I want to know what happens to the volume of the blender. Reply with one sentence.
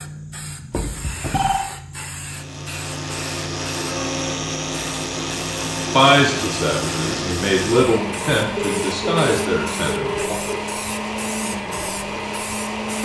The volume of the blender stays about the same.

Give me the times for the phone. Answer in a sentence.
The phone can be heard from 0.7 to 1.7 s and from 8.6 to 10.6 s.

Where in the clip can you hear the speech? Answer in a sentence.
The speech can be heard from 5.9 to 10.4 s.